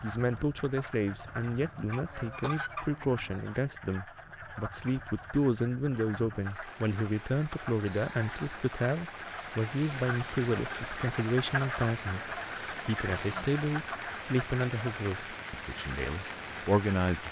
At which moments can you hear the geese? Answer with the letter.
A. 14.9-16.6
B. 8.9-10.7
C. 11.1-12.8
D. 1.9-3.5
D.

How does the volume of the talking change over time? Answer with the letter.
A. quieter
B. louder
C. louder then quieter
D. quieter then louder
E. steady
E.